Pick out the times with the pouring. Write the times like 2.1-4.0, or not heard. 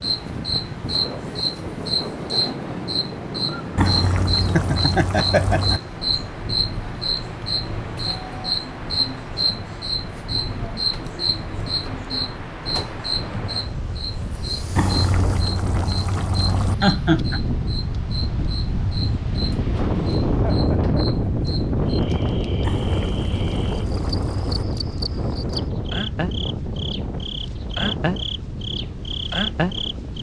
3.8-5.8, 14.8-16.8, 22.6-24.6.